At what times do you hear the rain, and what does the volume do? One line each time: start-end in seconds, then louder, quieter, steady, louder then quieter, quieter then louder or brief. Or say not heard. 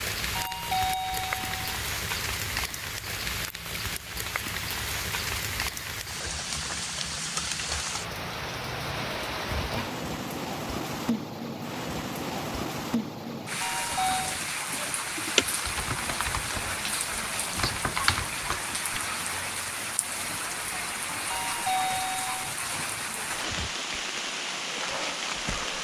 0.0-25.7 steady.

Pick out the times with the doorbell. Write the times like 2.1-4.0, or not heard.
0.3-1.6, 13.6-14.3, 21.3-22.4.